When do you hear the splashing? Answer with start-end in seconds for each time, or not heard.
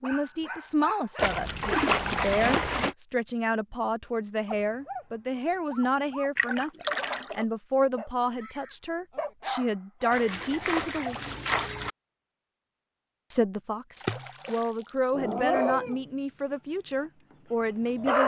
1.1-3.0, 6.3-7.5, 10.1-11.9, 13.9-15.2.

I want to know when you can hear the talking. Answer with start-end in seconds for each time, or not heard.
0.0-11.2, 13.3-18.2.